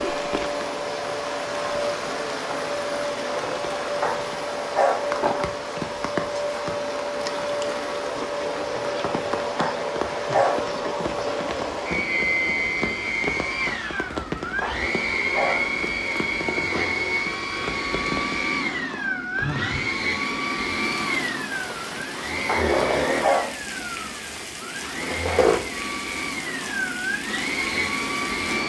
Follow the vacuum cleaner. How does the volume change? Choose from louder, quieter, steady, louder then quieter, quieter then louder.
steady.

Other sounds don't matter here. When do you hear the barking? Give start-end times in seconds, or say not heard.
4.0-5.0, 9.6-10.6, 14.6-15.6, 22.4-23.5.